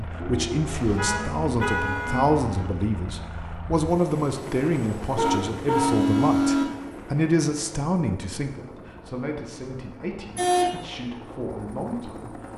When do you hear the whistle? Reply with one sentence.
You can't hear the whistle here.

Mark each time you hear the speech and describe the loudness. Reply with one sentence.
You can hear the speech from 0.0 to 12.5 s, getting quieter.